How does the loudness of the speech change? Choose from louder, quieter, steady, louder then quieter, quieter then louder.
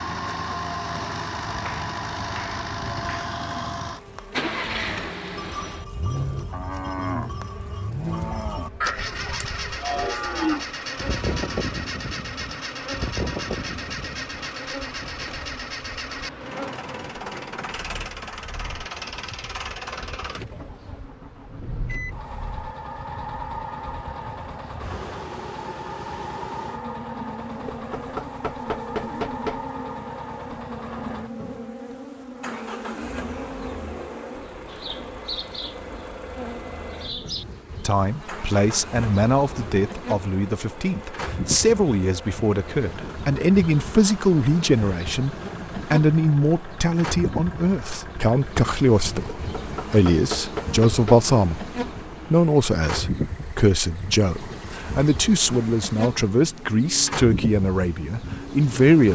steady.